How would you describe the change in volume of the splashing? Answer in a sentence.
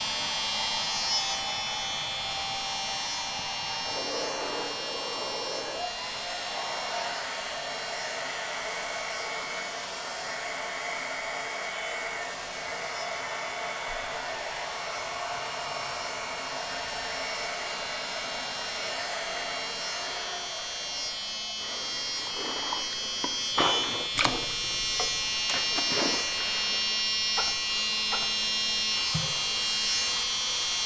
The volume of the splashing goes down.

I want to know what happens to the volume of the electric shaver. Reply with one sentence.
The volume of the electric shaver goes down, then up.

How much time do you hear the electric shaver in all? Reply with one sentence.
The electric shaver can be heard for 31 seconds in total.